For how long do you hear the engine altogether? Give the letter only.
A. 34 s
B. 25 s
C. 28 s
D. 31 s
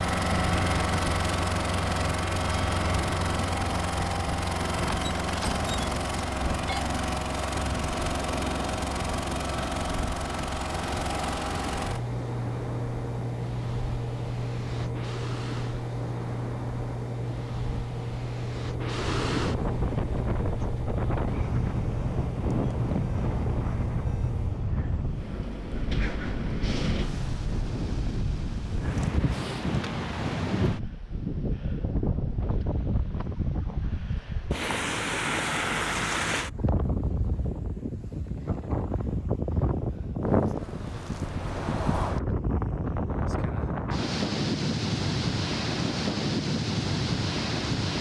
B.